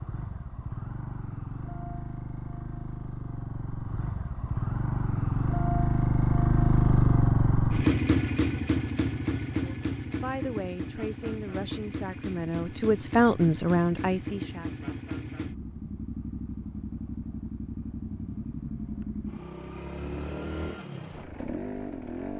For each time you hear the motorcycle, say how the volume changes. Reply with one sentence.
The motorcycle can be heard from 0.0 to 22.3 s, getting louder then quieter.